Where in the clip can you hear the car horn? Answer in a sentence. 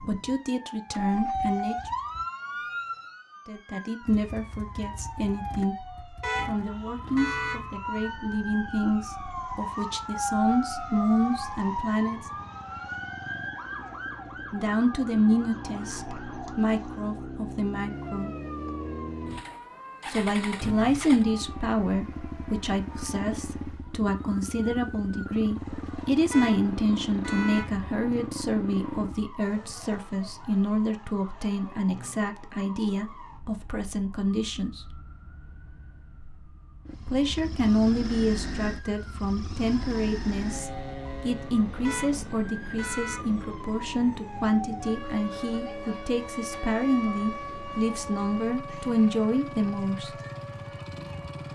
You can hear the car horn from 6.2 to 7.6 s, from 26.3 to 27.7 s and from 41.8 to 43.2 s.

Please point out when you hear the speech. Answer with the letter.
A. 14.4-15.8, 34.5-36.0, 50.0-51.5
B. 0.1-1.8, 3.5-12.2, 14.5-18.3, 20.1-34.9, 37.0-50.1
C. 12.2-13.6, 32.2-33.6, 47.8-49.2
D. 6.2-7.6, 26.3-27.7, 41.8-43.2
B.